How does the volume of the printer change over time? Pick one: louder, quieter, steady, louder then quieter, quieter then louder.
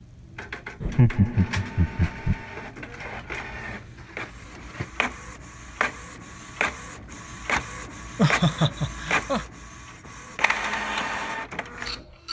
louder.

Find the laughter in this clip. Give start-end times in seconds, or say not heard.
0.8-2.4, 8.2-9.4.